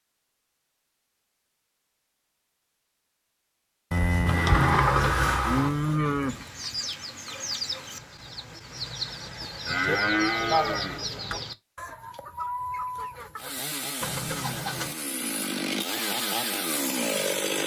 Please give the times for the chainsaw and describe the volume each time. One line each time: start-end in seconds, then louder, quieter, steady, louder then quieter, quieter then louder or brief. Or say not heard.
13.3-17.6 louder.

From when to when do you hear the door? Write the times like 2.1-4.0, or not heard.
4.2-5.8.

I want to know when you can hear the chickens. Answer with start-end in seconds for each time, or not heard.
6.2-14.9.